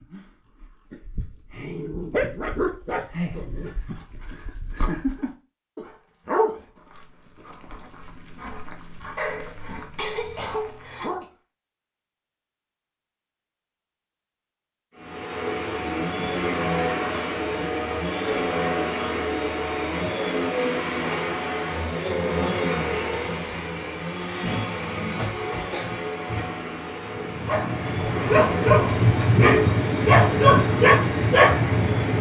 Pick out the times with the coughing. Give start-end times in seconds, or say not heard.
9.2-11.2, 25.4-25.9.